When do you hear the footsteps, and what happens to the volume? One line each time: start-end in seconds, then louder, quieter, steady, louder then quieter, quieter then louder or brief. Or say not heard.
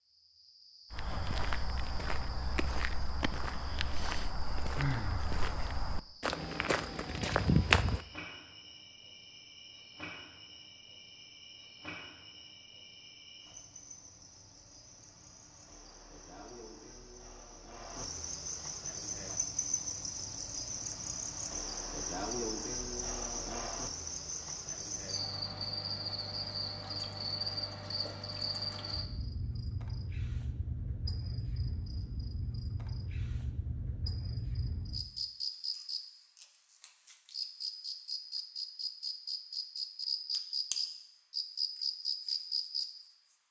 0.9-8.1 louder.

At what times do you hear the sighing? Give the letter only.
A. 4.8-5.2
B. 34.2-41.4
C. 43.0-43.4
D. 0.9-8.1
A.